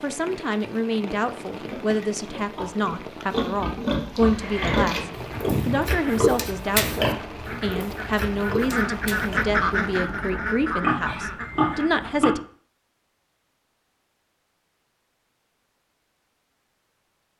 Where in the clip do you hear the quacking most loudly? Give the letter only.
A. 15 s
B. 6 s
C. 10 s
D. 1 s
C.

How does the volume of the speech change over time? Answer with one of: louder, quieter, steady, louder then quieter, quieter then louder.
steady.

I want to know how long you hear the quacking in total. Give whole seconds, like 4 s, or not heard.
8 s.